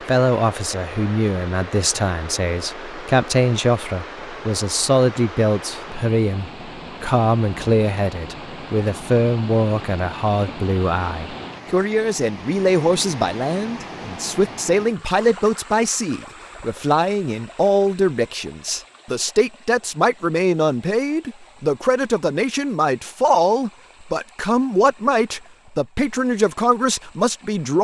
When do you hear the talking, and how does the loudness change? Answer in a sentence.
The talking can be heard from 0.1 to 27.7 s, at a steady volume.